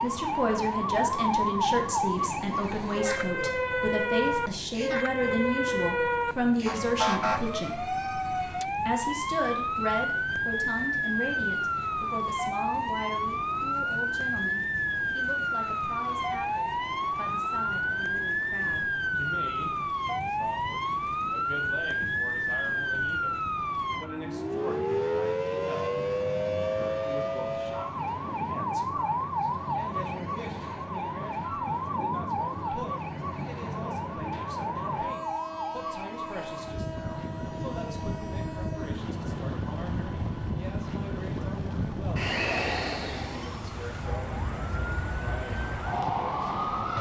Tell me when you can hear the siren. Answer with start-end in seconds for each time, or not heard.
0.0-46.9.